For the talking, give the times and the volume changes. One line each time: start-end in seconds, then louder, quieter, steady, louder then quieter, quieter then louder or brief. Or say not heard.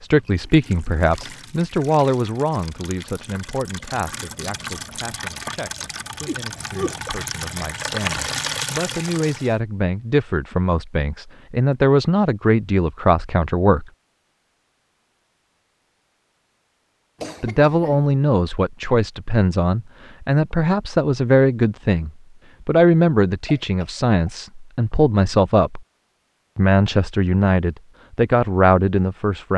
0.0-13.8 quieter then louder
17.4-25.8 steady
26.6-29.5 brief.